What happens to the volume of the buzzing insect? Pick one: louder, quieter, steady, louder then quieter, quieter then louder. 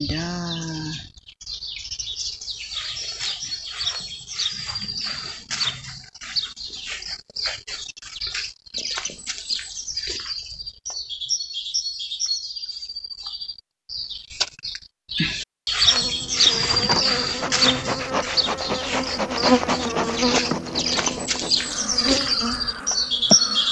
louder then quieter.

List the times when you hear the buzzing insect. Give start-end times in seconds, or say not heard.
15.8-23.6.